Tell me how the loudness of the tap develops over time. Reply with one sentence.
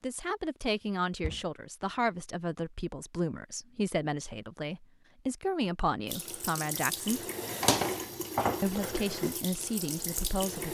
The volume of the tap goes up, then down.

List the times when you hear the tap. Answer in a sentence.
The tap can be heard from 6.0 to 10.6 s.